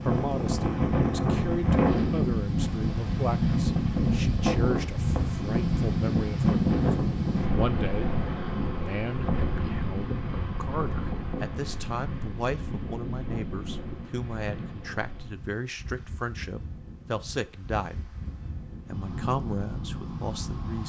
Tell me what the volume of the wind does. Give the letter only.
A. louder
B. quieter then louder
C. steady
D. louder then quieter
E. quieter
E.